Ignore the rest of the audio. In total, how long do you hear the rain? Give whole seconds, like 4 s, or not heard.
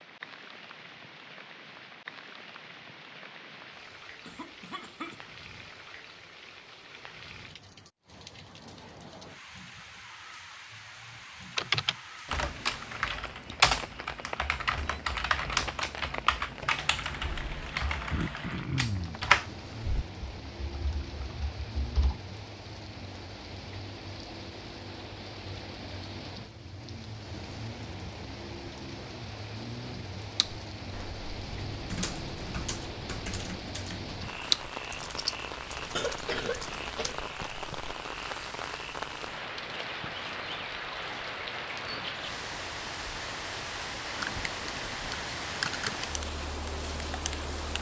48 s.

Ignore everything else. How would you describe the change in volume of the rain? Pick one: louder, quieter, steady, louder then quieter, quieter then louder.
louder.